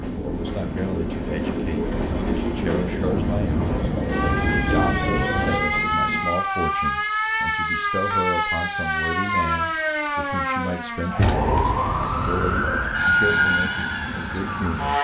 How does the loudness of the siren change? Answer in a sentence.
The loudness of the siren stays about the same.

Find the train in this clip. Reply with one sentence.
The train can be heard from 0.0 to 6.4 s.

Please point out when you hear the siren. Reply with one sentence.
The siren can be heard from 4.1 to 15.0 s.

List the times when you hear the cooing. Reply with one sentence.
The cooing can be heard from 3.0 to 5.7 s and from 11.2 to 12.9 s.